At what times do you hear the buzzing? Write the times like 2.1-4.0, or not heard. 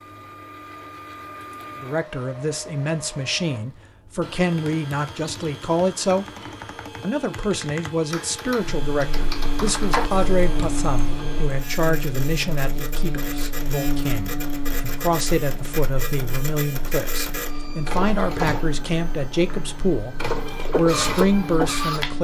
8.6-22.1.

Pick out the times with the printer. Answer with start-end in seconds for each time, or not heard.
0.0-22.1.